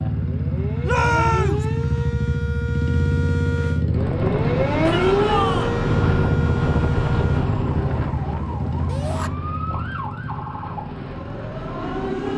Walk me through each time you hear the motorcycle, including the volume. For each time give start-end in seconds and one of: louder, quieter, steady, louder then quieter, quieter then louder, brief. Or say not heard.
0.0-12.3 quieter.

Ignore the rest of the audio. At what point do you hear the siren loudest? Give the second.
5 s.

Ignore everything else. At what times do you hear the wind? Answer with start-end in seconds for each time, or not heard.
3.9-12.3.